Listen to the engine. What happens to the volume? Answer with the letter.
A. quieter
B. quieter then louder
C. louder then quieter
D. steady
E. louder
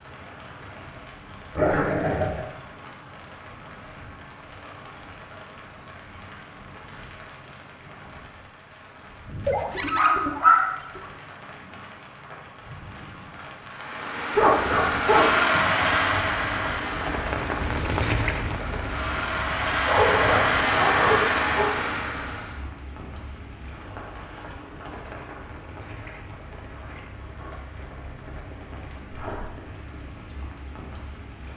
B.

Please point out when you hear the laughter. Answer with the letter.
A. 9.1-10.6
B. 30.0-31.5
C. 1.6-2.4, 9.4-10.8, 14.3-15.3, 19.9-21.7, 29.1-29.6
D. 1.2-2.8
D.